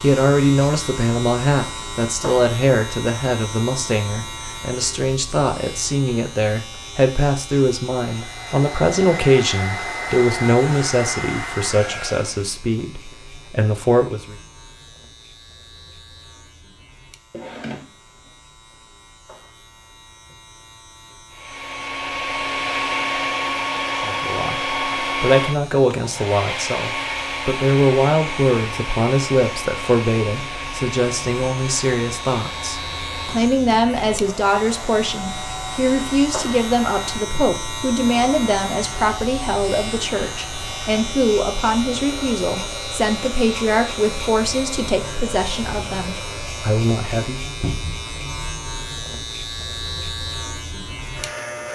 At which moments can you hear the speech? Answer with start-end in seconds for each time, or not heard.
0.0-14.3, 23.9-47.4.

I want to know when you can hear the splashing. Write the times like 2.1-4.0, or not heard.
not heard.